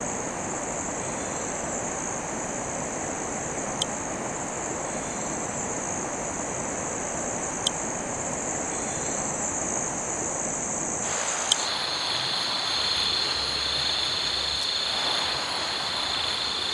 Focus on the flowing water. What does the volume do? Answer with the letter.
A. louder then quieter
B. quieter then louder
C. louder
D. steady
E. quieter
D.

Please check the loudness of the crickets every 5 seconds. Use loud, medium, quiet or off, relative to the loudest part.
medium, medium, loud, loud.